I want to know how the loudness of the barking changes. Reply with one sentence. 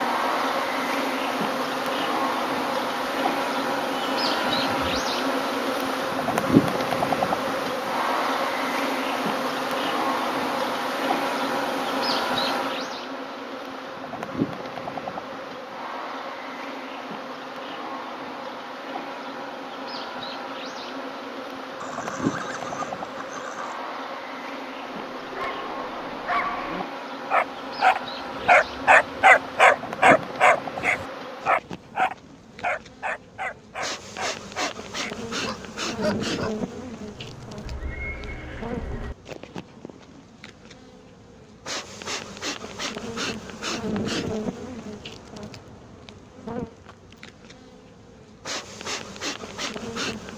The loudness of the barking goes up, then down.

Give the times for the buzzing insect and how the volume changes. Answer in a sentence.
You can hear the buzzing insect from 0.0 to 50.3 s, getting quieter.